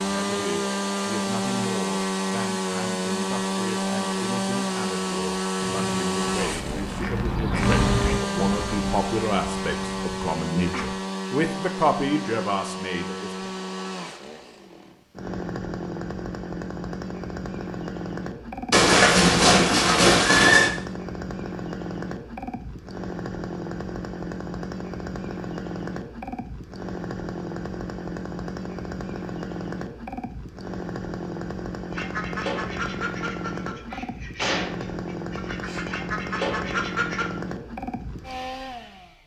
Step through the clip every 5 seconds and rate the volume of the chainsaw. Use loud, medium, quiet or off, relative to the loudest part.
loud, loud, medium, medium, medium, medium, medium, medium.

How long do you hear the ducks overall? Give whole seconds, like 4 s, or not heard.
11 s.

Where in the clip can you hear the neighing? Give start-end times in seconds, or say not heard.
18.7-20.7.